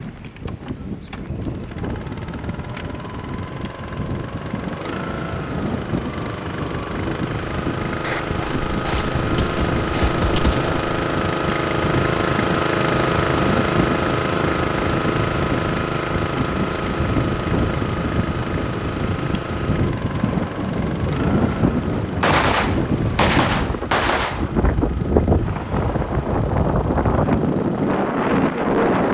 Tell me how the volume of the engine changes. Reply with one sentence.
The volume of the engine goes up, then down.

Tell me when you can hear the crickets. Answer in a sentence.
You can't hear the crickets here.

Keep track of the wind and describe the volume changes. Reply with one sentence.
The loudness of the wind goes up.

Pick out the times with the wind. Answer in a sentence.
You can hear the wind from 0.0 to 29.0 s.